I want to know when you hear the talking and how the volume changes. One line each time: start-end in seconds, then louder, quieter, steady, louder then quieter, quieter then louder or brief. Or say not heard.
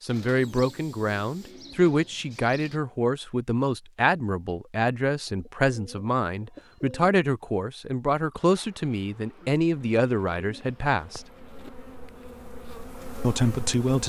0.0-11.2 steady
13.2-14.0 brief.